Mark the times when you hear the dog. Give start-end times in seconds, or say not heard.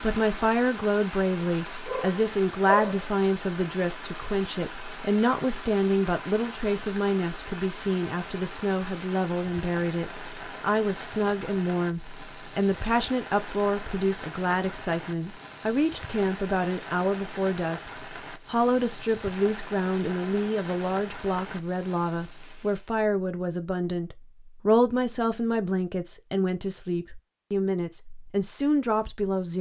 1.9-3.0.